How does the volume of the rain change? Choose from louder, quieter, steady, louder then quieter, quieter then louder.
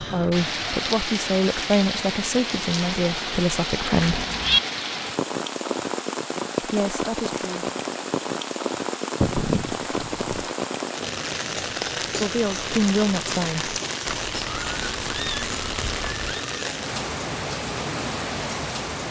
steady.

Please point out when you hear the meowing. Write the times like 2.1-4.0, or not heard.
4.0-4.6, 9.2-10.4, 14.1-16.4.